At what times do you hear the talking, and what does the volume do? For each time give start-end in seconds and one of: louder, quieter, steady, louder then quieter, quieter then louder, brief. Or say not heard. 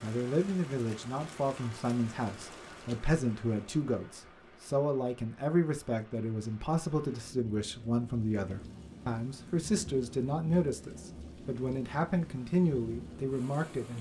0.0-13.9 steady.